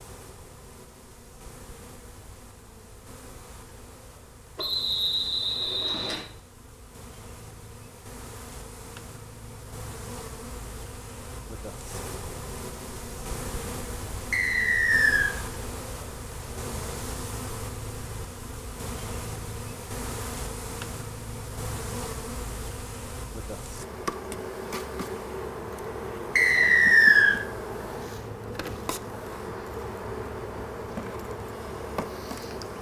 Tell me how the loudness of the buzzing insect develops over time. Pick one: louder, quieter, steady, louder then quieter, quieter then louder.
louder.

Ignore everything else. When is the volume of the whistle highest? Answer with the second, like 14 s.
27 s.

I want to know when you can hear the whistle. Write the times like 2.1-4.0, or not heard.
4.5-6.2, 14.3-15.3, 26.4-27.4.